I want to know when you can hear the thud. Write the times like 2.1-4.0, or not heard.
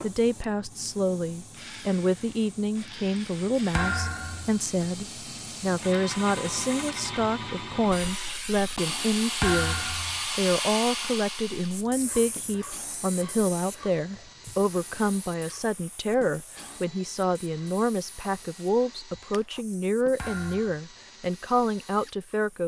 3.8-4.6, 9.4-10.2, 20.1-20.8.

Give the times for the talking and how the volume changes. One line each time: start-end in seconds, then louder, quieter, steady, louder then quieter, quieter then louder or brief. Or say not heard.
0.0-22.6 steady.